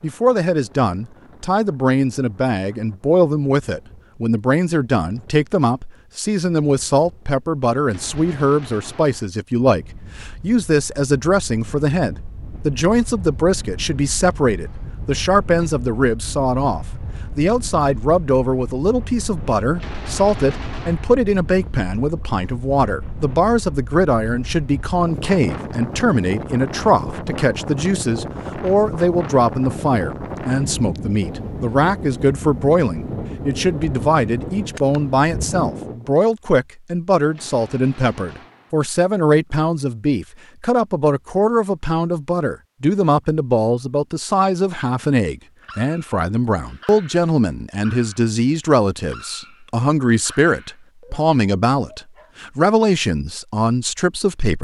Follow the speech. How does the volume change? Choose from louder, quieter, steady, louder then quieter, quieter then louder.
steady.